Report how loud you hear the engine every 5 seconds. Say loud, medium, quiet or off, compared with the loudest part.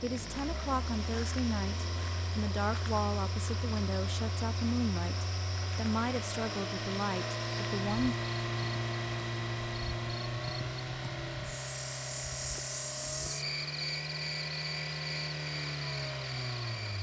medium, loud, loud, loud.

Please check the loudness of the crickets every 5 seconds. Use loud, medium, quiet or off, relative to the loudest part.
medium, medium, loud, loud.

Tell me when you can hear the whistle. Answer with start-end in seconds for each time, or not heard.
not heard.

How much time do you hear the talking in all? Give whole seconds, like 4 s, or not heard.
8 s.